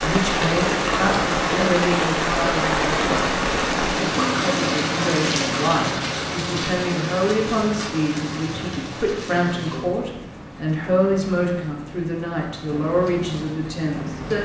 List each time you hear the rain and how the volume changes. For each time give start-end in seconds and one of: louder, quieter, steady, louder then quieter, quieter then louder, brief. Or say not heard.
0.0-14.3 quieter.